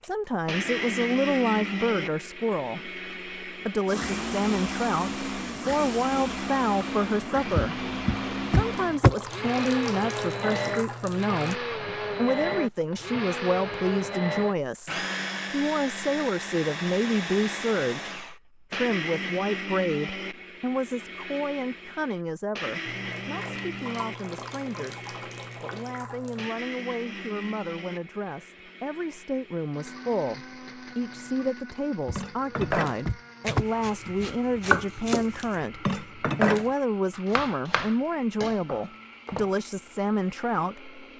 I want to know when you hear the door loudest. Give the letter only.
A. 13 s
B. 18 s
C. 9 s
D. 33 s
C.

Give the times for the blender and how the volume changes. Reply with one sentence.
The blender can be heard from 0.0 to 41.1 s, getting quieter.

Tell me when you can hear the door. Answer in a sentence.
The door can be heard from 7.5 to 9.2 s and from 32.0 to 34.3 s.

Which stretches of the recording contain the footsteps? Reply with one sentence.
You can't hear the footsteps here.